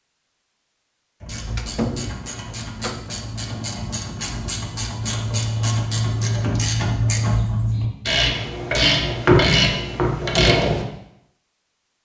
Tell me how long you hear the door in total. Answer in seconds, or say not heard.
2 s.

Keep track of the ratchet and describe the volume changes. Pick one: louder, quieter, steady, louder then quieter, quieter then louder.
louder.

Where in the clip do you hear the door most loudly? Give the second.
2 s.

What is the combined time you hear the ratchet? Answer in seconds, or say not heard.
10 s.